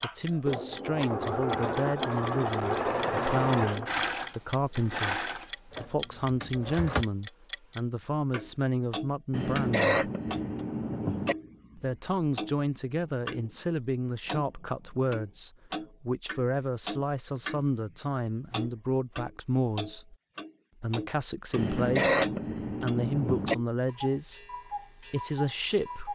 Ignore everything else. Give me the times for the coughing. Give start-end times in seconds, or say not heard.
9.3-11.3, 21.6-23.6.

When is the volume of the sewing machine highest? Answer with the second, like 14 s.
3 s.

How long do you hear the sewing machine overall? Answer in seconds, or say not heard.
7 s.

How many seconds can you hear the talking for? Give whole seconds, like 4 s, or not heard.
24 s.